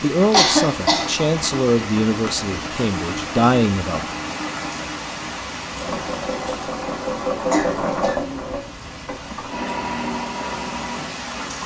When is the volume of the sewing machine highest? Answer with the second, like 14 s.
8 s.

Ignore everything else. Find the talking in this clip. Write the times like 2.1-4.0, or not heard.
0.0-4.2.